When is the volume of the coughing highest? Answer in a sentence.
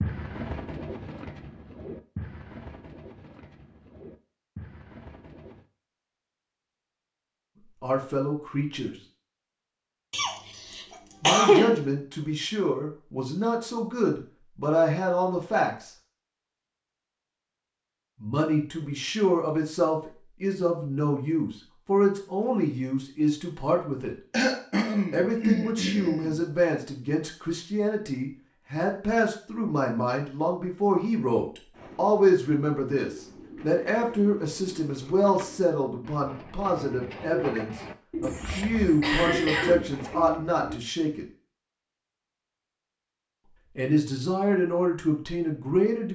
The loudest moment of the coughing is at 11 seconds.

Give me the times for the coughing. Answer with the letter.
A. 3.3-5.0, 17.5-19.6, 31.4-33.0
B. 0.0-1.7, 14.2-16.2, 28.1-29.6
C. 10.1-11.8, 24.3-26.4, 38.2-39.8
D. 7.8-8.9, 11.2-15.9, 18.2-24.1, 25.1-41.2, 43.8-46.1
C.